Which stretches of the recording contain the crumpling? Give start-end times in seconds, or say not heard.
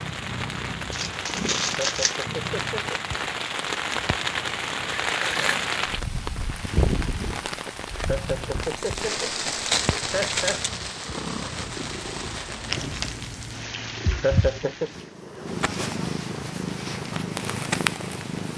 0.9-2.2, 8.6-10.7, 12.7-13.3.